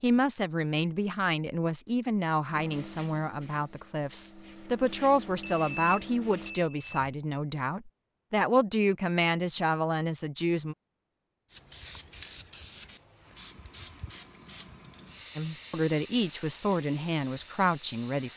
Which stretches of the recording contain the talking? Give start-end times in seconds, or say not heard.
0.0-10.8, 15.3-18.3.